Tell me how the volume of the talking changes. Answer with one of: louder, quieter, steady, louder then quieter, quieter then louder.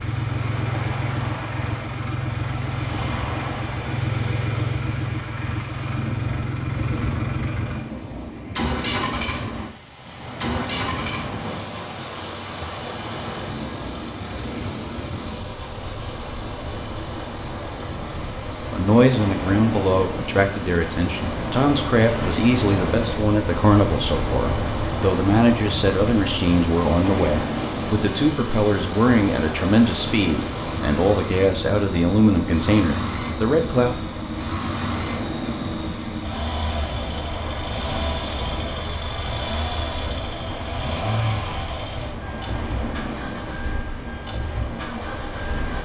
steady.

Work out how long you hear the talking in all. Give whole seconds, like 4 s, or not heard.
15 s.